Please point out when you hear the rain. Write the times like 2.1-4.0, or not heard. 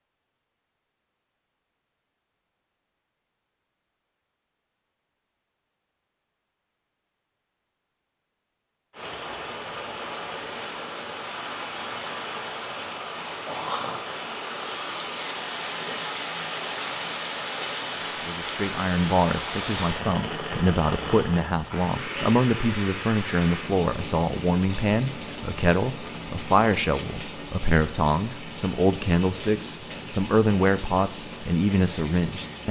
8.9-32.6.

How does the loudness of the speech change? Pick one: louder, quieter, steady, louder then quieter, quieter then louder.
steady.